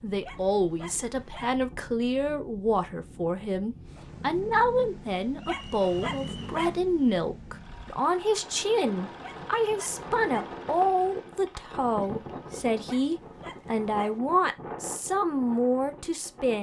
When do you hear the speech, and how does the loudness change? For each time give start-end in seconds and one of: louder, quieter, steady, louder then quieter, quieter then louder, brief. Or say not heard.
0.0-16.5 steady.